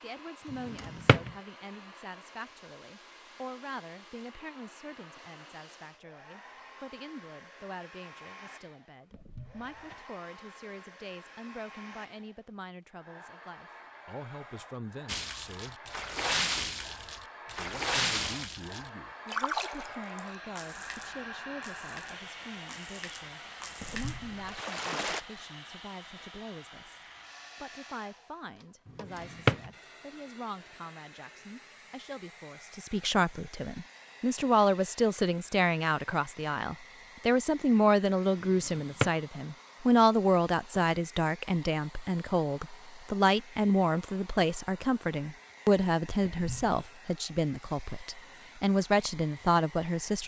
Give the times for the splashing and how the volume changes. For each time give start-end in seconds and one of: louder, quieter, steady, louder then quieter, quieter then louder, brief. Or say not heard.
15.1-25.2 quieter then louder.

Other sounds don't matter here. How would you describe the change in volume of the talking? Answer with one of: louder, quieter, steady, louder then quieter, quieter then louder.
louder.